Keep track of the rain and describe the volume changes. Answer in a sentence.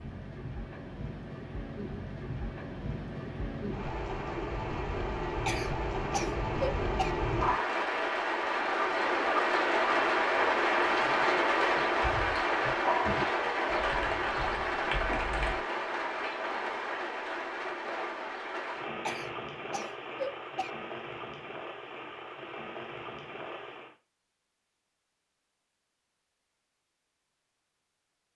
The loudness of the rain goes up, then down.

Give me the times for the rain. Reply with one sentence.
The rain can be heard from 0.0 to 23.9 s.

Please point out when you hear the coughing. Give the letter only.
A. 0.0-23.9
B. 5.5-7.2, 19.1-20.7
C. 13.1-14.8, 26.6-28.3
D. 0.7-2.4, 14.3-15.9
B.